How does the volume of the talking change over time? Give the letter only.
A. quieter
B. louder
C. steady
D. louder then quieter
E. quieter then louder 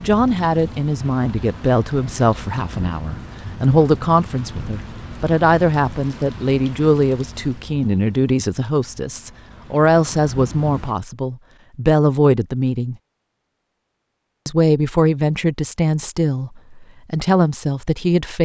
C.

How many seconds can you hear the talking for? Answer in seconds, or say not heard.
17 s.